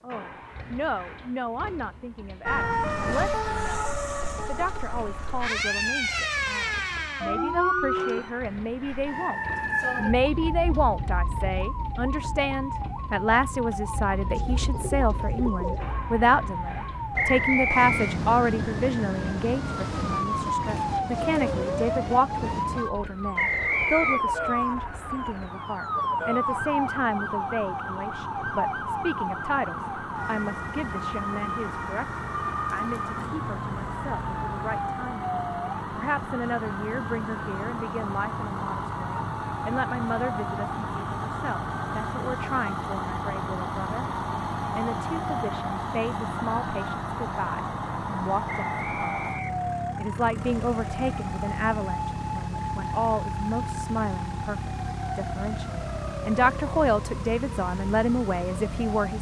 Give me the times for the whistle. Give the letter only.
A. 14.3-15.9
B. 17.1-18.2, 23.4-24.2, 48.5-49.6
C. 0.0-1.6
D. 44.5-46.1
B.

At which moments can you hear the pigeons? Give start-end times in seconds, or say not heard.
14.3-15.9.